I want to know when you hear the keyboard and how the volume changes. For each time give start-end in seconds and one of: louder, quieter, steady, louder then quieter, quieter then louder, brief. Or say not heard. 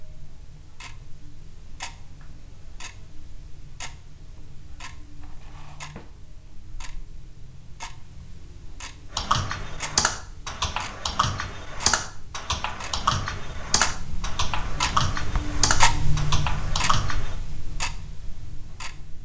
9.1-17.4 steady.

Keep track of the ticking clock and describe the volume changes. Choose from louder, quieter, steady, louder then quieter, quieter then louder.
louder.